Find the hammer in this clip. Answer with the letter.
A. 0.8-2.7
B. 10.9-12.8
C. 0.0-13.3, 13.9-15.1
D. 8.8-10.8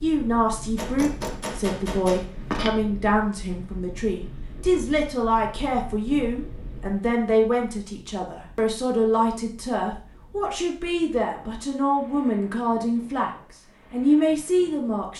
A.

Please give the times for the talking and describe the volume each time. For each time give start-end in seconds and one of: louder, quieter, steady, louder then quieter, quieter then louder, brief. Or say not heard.
0.0-13.3 steady
13.9-15.1 brief.